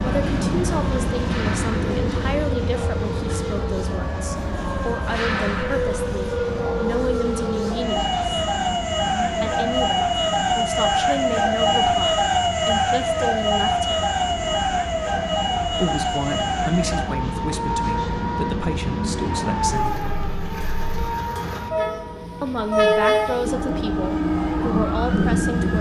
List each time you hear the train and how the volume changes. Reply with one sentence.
You can hear the train from 0.0 to 25.7 s, getting quieter then louder.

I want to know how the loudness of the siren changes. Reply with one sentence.
The loudness of the siren goes up, then down.